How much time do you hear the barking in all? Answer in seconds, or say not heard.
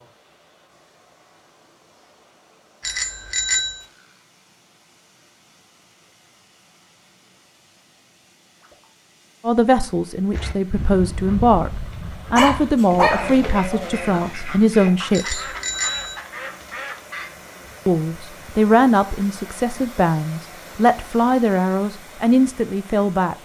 2 s.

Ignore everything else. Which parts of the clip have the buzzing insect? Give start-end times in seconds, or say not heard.
not heard.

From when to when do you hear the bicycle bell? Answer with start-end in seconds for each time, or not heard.
2.8-3.9, 15.1-16.2.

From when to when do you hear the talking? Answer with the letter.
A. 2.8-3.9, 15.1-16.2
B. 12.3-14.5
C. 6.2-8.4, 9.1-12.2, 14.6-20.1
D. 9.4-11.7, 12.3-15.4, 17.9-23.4
D.